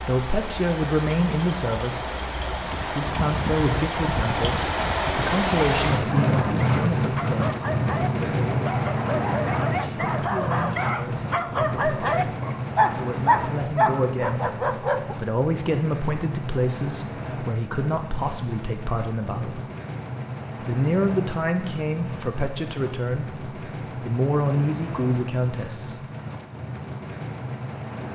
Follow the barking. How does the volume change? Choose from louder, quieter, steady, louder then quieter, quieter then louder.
louder.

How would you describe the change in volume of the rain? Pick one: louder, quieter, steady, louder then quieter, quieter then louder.
quieter.